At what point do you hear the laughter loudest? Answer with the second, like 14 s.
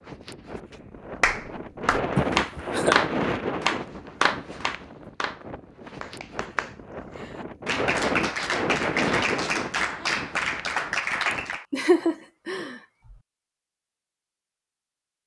12 s.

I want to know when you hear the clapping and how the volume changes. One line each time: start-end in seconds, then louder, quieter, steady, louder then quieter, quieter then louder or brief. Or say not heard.
1.2-11.7 quieter then louder.